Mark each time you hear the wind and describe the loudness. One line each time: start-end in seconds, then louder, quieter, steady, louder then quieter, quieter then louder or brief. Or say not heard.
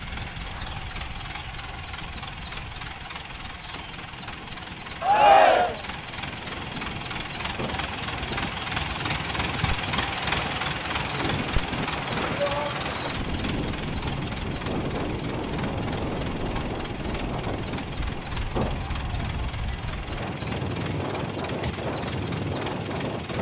0.0-23.3 louder.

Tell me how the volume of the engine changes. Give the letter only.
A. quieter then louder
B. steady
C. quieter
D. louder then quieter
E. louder
D.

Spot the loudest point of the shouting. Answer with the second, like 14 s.
5 s.